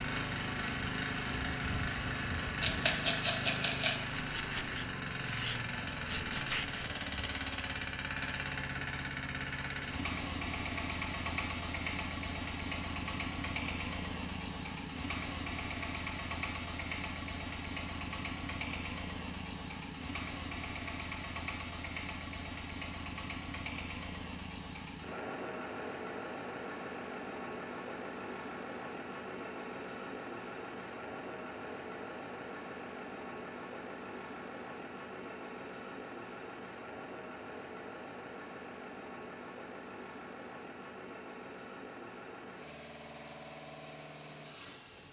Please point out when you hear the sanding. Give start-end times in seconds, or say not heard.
4.2-6.9.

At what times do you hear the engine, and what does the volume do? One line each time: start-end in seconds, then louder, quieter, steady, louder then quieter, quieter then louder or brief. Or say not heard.
0.0-45.0 quieter.